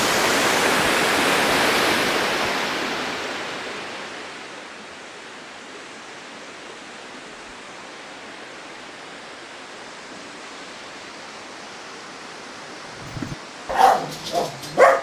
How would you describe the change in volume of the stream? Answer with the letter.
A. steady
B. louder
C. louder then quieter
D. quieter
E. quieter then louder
D.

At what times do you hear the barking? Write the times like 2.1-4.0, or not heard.
13.1-14.9.